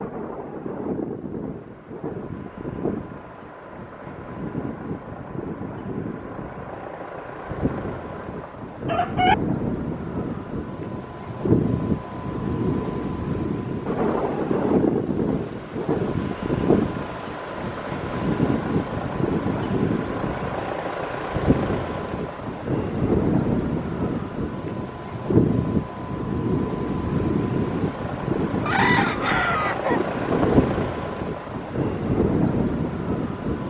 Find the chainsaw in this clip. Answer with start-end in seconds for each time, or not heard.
not heard.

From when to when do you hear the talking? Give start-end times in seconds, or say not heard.
not heard.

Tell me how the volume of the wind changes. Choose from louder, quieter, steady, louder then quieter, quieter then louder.
louder.